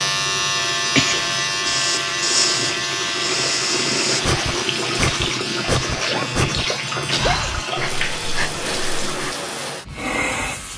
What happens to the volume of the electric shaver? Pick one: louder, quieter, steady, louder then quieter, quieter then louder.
quieter.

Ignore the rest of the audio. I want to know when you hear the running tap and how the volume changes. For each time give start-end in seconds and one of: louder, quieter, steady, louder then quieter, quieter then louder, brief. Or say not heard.
0.0-10.7 louder.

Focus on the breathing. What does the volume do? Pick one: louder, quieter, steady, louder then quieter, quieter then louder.
quieter.